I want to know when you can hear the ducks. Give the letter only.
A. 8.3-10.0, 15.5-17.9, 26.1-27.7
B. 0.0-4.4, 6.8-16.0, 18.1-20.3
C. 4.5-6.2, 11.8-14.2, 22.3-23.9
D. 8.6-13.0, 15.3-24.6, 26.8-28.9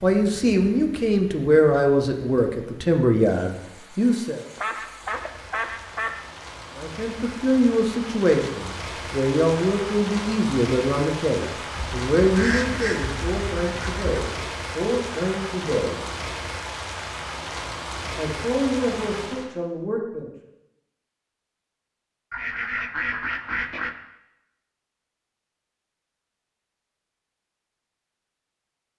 C.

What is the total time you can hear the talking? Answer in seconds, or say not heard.
16 s.